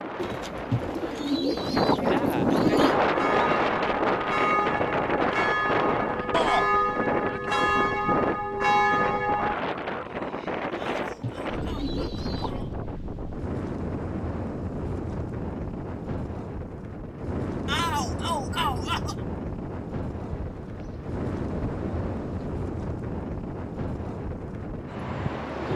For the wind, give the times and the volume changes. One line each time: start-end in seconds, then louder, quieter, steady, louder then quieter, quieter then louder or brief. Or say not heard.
0.0-25.7 quieter.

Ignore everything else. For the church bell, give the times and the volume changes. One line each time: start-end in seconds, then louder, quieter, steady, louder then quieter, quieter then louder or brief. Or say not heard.
2.6-9.6 louder.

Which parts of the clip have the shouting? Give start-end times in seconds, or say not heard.
6.3-6.7, 10.8-12.8, 17.6-19.1.